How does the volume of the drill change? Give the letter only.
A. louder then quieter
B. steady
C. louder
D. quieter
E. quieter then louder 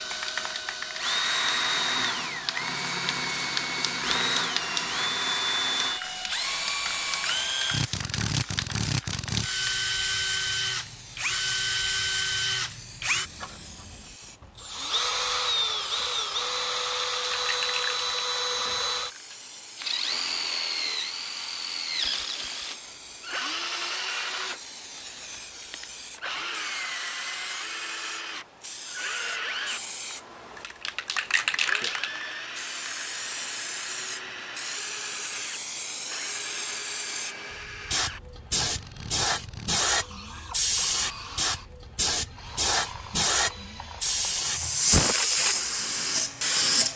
D.